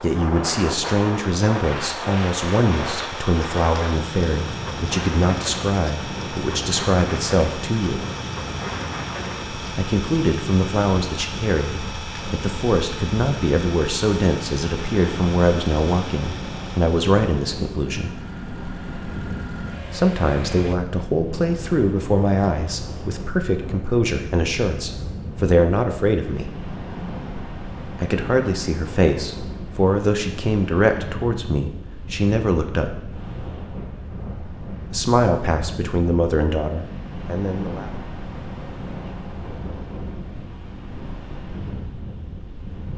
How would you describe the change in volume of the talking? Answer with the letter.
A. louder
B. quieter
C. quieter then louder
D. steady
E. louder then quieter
D.